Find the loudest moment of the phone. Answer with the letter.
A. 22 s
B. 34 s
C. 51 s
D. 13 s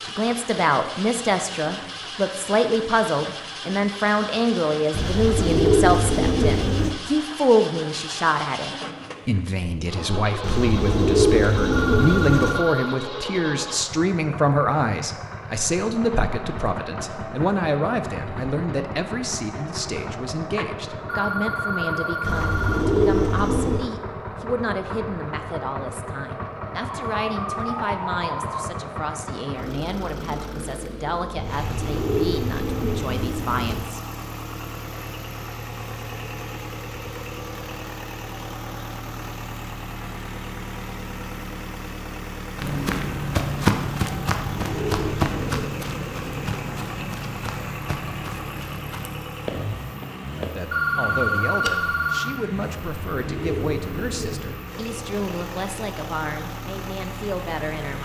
C.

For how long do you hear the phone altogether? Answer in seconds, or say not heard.
5 s.